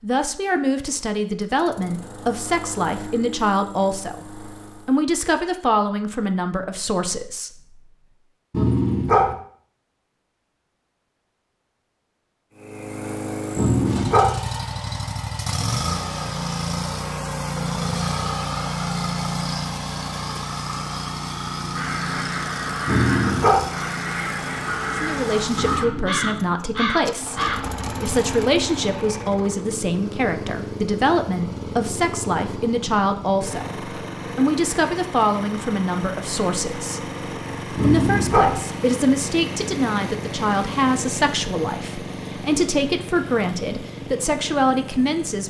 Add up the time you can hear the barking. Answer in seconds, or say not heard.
3 s.